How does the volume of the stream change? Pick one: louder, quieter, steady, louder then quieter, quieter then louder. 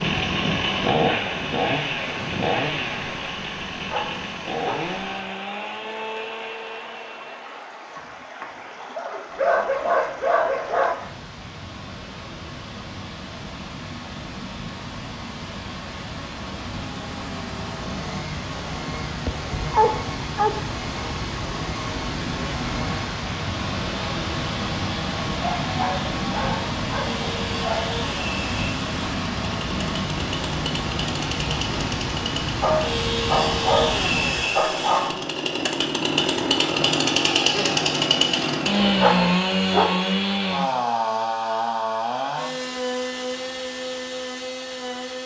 louder.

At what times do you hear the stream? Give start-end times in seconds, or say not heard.
0.0-34.5.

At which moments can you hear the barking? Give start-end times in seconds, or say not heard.
3.9-5.0, 8.9-10.9, 19.2-20.6, 25.4-27.9, 32.6-35.2, 39.0-40.1.